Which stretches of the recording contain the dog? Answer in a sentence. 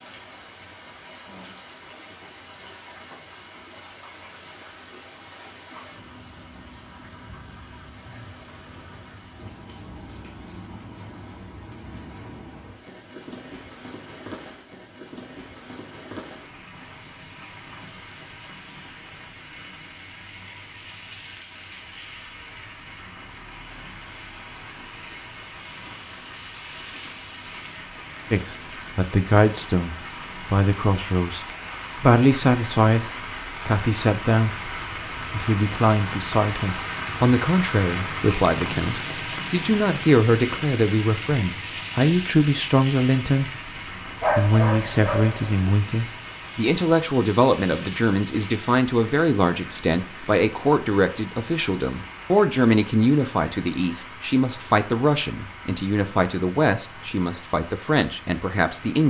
You can hear the dog from 44.2 to 45.7 s.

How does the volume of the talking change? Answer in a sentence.
The volume of the talking stays about the same.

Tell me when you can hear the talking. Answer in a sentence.
You can hear the talking from 28.3 to 43.7 s and from 44.4 to 59.0 s.